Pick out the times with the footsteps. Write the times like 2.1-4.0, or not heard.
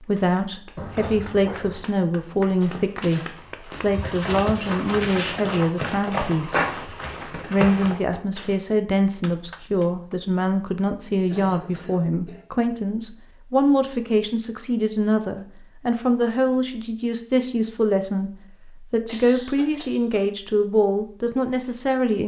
2.5-8.0.